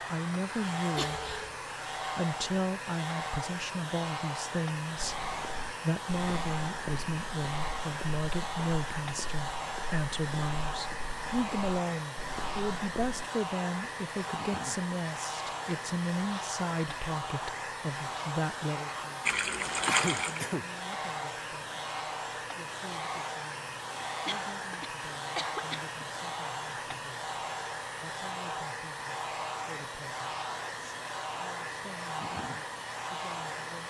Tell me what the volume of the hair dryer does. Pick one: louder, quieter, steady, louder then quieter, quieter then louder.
steady.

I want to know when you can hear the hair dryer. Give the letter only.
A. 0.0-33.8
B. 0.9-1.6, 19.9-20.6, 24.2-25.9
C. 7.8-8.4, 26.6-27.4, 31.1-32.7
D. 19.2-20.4
A.